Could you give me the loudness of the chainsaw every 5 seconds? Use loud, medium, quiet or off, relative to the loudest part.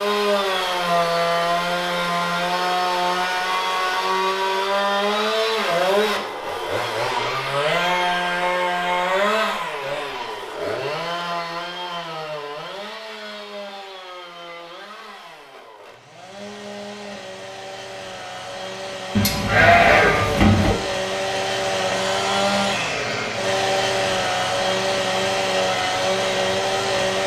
loud, loud, medium, quiet, loud, loud.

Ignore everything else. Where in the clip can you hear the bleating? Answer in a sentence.
The bleating can be heard from 19.1 to 20.8 s.